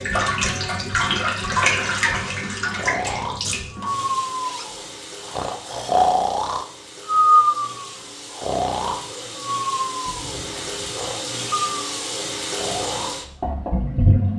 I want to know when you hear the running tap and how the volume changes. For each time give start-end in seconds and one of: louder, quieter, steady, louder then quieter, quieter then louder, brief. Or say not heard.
0.0-14.3 quieter then louder.